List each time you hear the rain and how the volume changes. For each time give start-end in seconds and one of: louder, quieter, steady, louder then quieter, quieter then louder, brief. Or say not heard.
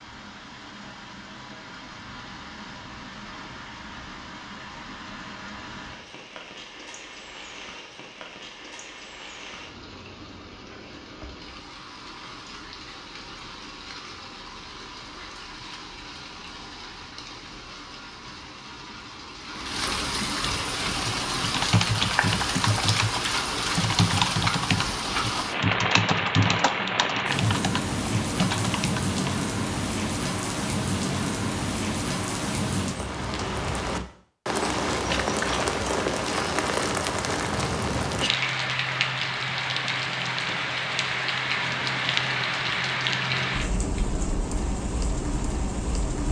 0.0-46.2 louder.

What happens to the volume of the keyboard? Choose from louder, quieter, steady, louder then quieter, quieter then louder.
steady.